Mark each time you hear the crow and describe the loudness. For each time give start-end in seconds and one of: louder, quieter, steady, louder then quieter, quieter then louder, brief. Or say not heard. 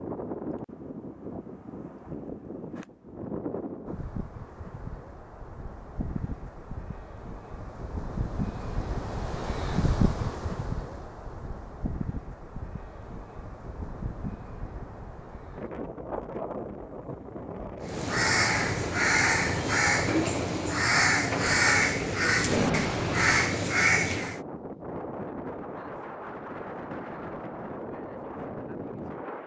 17.8-24.4 steady.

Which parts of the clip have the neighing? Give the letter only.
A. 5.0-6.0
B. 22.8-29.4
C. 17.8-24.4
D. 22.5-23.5
D.